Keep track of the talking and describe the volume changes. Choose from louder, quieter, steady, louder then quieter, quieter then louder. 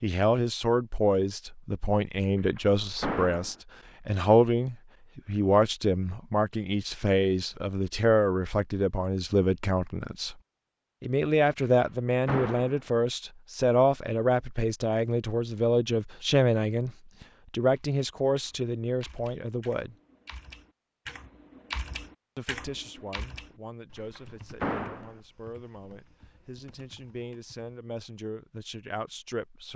quieter.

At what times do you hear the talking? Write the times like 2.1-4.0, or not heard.
0.0-10.3, 11.0-19.9, 22.4-29.7.